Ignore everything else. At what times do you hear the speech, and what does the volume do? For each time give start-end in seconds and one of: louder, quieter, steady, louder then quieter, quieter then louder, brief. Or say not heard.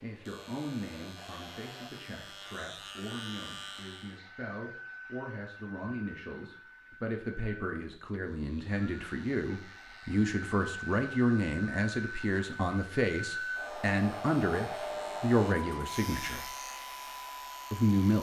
0.0-16.5 louder
17.7-18.1 brief.